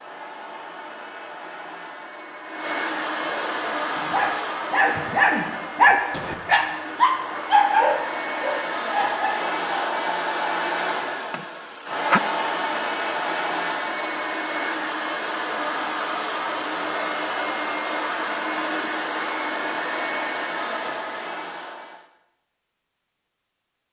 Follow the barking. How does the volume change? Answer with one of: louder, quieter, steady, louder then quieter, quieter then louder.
louder then quieter.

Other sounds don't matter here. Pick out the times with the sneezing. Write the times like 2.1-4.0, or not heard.
11.3-12.2.